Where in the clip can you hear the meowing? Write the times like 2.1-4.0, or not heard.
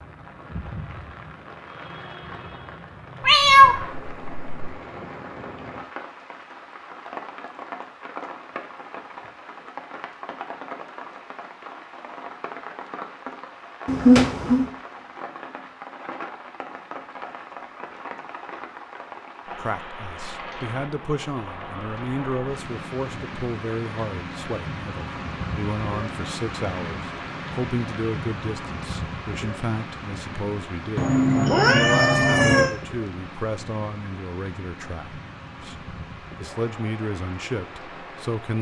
3.2-4.8, 13.8-14.7, 30.9-32.7.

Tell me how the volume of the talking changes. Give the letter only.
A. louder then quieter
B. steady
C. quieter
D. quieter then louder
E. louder
B.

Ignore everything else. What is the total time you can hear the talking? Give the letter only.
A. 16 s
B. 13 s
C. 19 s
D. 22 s
C.